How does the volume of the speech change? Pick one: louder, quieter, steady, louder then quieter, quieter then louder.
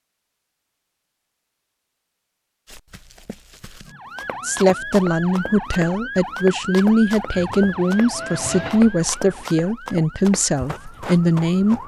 steady.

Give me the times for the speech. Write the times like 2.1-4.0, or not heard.
4.5-11.8.